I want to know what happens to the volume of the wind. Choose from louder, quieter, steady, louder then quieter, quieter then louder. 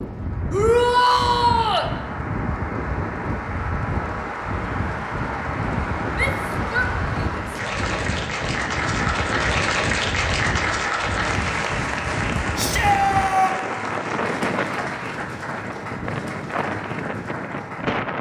steady.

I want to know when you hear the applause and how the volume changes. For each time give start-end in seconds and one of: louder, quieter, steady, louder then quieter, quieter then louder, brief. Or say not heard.
0.0-18.1 louder then quieter.